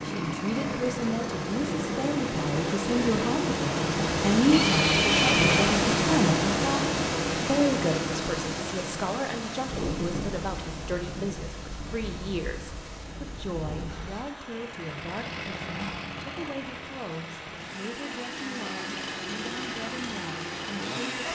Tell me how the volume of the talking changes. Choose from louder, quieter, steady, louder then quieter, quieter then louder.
quieter.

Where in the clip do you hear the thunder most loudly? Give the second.
10 s.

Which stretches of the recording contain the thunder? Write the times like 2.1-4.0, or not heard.
9.7-14.2.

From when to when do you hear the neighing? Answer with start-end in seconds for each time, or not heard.
4.5-5.7.